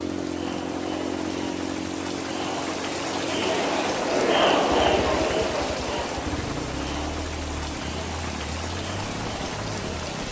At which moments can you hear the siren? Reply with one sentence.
You can't hear the siren here.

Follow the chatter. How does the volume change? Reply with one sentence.
The volume of the chatter goes up, then down.